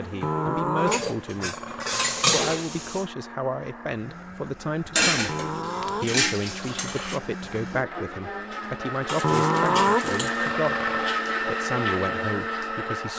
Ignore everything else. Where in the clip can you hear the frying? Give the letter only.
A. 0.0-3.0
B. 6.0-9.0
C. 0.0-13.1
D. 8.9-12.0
A.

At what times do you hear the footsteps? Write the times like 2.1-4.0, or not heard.
not heard.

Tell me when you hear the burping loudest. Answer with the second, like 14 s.
10 s.